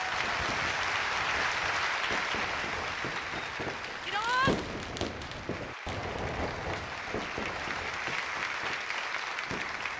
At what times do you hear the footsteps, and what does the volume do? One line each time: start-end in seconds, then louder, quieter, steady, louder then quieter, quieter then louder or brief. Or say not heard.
not heard.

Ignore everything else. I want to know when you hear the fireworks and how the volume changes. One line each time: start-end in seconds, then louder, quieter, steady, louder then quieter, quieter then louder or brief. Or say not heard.
0.0-9.9 louder then quieter.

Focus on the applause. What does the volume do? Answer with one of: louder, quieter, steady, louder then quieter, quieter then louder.
quieter then louder.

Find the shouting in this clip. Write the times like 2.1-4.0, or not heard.
4.0-4.5.